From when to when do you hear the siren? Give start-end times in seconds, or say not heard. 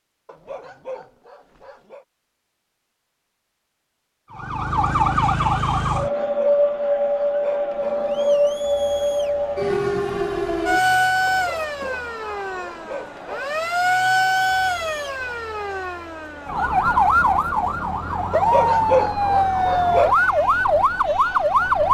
4.3-21.8.